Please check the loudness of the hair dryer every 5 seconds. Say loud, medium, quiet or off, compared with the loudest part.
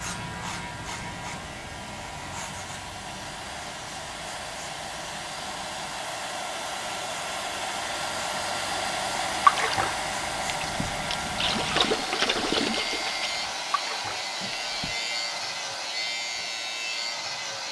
medium, loud, loud, medium.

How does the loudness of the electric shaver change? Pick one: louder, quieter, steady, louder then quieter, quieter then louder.
quieter then louder.